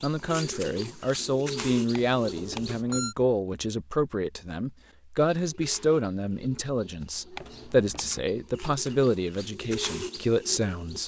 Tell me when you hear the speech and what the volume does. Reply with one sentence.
The speech can be heard from 0.0 to 11.0 s, at a steady volume.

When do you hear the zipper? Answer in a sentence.
You can't hear the zipper here.